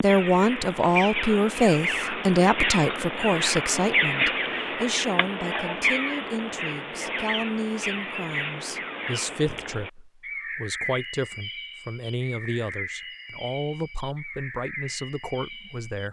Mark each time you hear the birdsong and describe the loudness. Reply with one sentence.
You can hear the birdsong from 0.0 to 16.0 s, getting quieter.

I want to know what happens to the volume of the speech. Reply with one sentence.
The volume of the speech goes down.